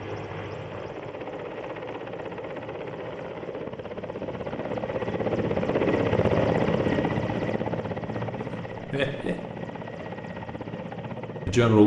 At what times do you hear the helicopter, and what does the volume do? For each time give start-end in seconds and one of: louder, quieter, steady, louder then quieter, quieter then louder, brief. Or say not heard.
0.0-11.8 louder then quieter.